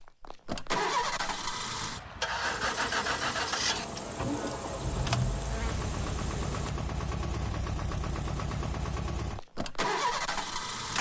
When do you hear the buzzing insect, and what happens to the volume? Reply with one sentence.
You can hear the buzzing insect from 2.4 to 6.8 s, at a steady volume.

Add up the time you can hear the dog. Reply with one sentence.
You can't hear the dog here.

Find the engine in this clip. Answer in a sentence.
You can hear the engine from 0.0 to 10.9 s.